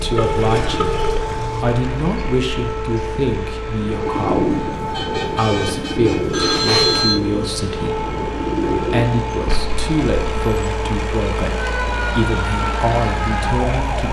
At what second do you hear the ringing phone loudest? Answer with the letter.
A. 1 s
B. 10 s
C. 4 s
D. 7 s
D.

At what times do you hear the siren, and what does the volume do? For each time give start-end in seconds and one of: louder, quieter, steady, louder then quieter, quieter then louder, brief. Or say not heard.
0.0-14.0 steady.